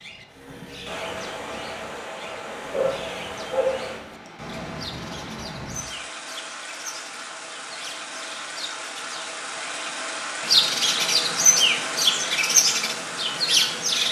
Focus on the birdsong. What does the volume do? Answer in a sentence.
The loudness of the birdsong goes up.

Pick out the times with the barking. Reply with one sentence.
You can hear the barking from 2.7 to 3.9 s.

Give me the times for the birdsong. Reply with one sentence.
The birdsong can be heard from 0.0 to 14.0 s.